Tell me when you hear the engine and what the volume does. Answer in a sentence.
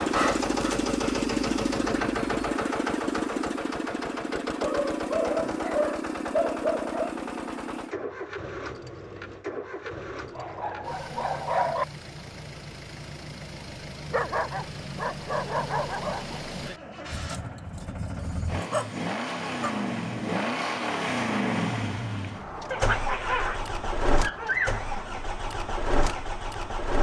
The engine can be heard from 0.0 to 26.9 s, getting quieter then louder.